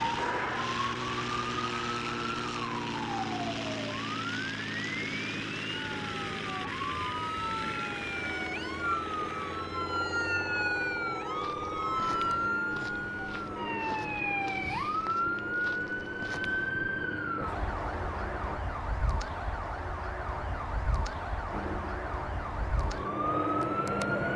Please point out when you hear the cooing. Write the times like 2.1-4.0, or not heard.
not heard.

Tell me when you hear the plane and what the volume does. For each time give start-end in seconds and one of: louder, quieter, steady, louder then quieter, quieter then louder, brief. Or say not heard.
0.0-18.6 quieter
21.5-24.3 brief.